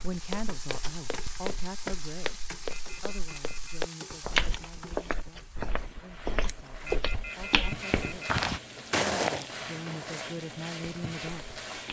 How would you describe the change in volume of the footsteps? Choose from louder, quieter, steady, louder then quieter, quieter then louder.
louder.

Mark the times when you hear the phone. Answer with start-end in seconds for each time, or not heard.
2.7-3.9, 6.8-8.3.